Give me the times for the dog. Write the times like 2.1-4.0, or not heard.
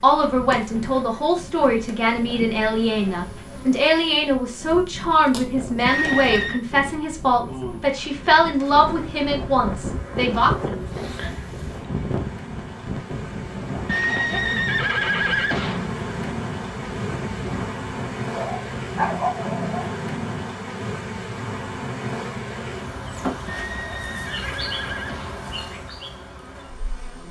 18.3-19.9.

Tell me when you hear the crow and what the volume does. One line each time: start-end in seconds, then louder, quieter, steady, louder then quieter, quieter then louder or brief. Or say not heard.
not heard.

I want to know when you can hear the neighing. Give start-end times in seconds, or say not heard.
5.8-6.6, 13.8-15.9, 23.4-25.4.